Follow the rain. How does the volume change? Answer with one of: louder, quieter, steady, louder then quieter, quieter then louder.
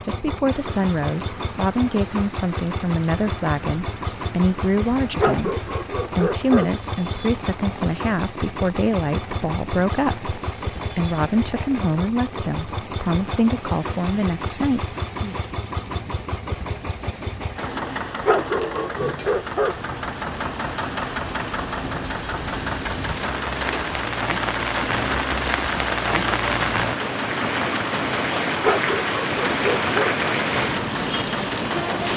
louder.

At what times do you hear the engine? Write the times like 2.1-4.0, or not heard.
0.0-32.1.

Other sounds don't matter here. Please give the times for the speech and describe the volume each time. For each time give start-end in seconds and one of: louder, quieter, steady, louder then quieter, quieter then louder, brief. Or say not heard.
0.0-15.3 steady.